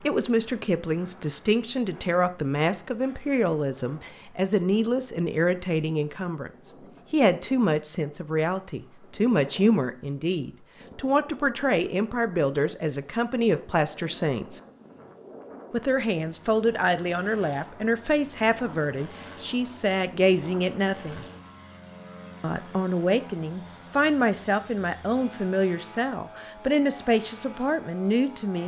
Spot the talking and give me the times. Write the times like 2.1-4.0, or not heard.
0.0-6.5, 7.1-14.6, 15.7-21.2, 22.4-28.6.